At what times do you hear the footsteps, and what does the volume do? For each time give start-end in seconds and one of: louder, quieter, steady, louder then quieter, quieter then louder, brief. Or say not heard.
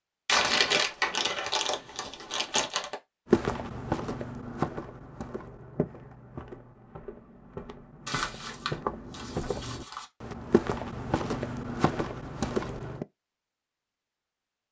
3.3-13.1 quieter then louder.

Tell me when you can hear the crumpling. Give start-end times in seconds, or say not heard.
0.2-3.0, 8.1-10.1.